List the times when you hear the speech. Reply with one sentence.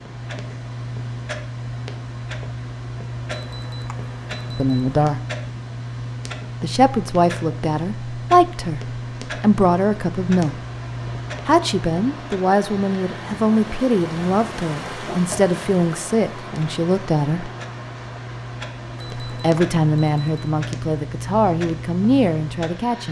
The speech can be heard from 4.5 to 5.2 s, from 6.6 to 10.6 s, from 11.4 to 17.5 s and from 19.2 to 23.0 s.